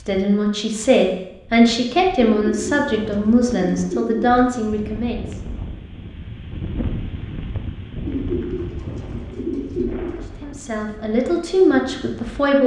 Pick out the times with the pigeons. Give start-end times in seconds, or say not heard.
2.2-4.5, 8.1-10.2.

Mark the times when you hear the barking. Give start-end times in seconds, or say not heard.
not heard.